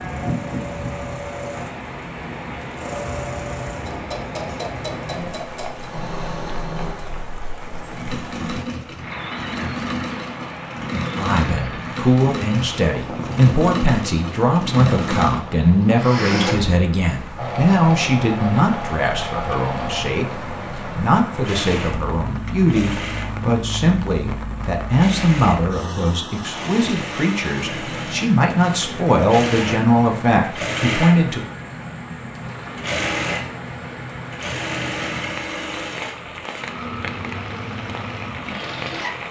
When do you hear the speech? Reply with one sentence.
You can hear the speech from 11.2 to 31.4 s.